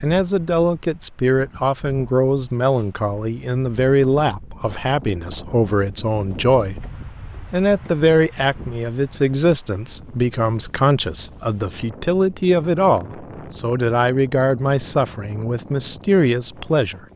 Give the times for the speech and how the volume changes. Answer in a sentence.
The speech can be heard from 0.0 to 6.9 s, at a steady volume; and from 7.5 to 17.1 s, at a steady volume.